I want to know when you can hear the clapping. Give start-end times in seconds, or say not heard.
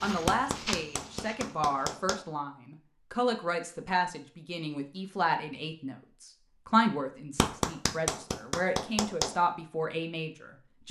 0.2-2.2, 7.3-9.3.